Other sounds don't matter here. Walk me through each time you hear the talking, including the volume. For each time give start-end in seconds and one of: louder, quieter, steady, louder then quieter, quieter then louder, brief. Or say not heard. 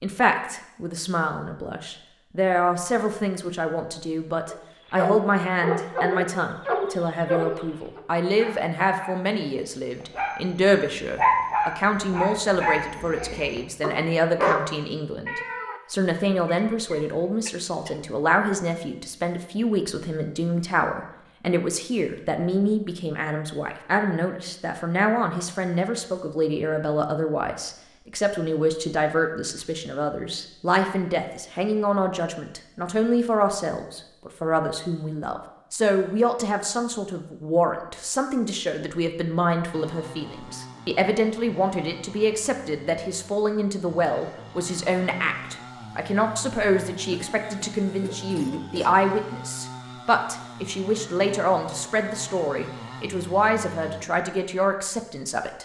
0.0-55.6 steady.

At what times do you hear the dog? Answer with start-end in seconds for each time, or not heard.
4.5-14.7.